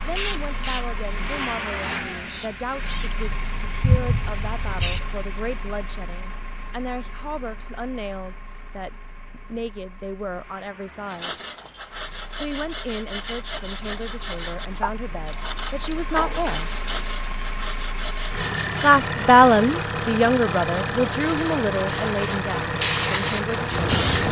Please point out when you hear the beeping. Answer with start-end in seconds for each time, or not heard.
not heard.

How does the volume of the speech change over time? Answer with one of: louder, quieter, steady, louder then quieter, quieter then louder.
louder.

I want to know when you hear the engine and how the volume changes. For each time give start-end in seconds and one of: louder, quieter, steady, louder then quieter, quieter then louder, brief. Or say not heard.
0.0-24.2 quieter then louder.